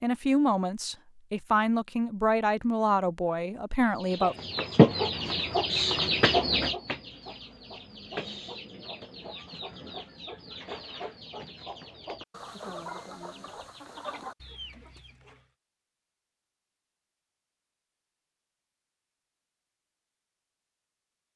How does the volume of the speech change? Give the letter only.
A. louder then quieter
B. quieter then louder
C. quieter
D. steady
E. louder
D.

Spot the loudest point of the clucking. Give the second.
5 s.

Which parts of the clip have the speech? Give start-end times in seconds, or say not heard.
0.0-4.3.